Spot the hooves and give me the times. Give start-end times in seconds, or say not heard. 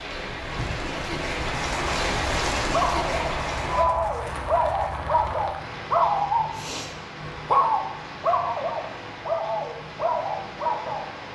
0.4-5.5.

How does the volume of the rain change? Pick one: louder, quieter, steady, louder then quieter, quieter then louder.
quieter.